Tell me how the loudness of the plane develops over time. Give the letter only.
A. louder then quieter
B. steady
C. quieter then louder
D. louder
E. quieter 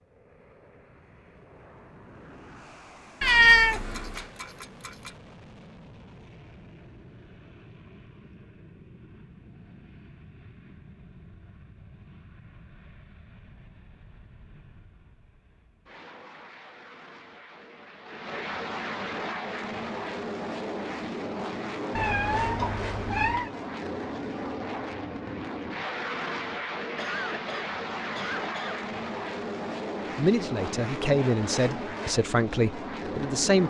D.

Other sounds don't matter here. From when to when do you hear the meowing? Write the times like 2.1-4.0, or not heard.
3.2-5.1, 21.9-23.5.